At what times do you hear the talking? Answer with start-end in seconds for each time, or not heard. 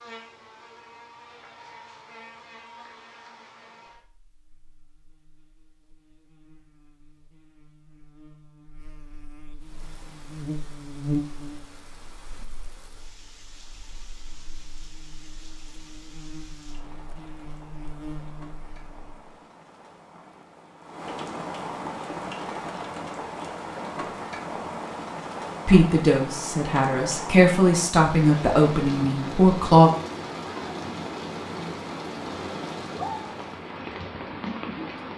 25.6-29.9.